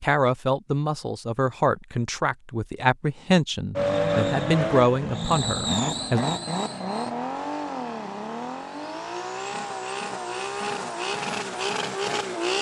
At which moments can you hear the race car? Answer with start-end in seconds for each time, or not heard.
3.8-12.5.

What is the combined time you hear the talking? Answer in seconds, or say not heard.
6 s.